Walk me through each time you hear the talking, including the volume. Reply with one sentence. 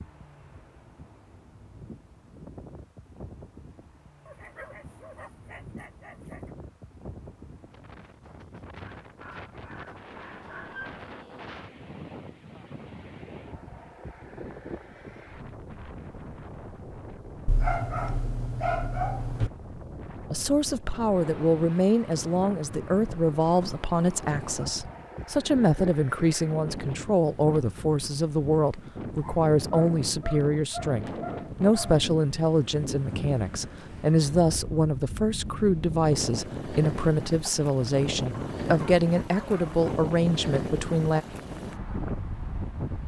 You can hear the talking from 20.3 to 41.2 s, at a steady volume.